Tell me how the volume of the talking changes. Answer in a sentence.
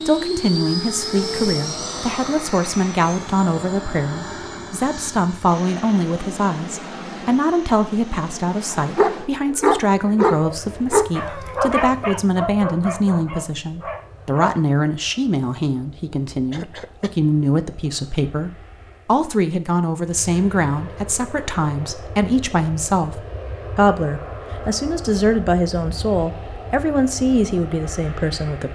The volume of the talking stays about the same.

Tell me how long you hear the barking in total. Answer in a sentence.
The barking can be heard for 6 seconds in total.